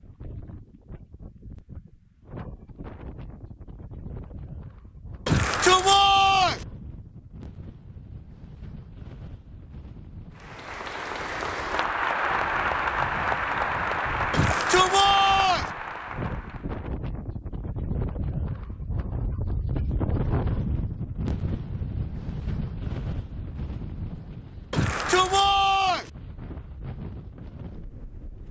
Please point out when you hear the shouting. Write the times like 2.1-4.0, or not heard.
5.2-6.7, 14.3-15.7, 24.7-26.1.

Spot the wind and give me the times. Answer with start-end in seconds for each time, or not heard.
0.0-28.4.